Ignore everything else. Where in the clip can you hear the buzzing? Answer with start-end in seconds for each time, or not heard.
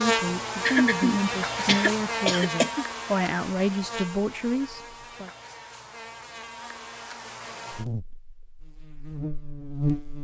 0.0-10.1.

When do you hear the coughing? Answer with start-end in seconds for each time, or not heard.
0.6-2.9.